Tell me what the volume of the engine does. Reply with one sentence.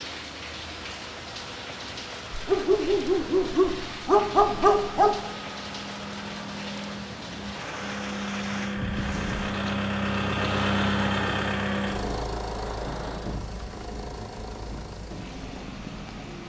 The loudness of the engine goes up, then down.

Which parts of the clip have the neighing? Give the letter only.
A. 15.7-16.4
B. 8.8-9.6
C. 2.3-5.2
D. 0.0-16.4
B.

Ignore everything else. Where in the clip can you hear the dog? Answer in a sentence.
You can hear the dog from 2.3 to 5.2 s.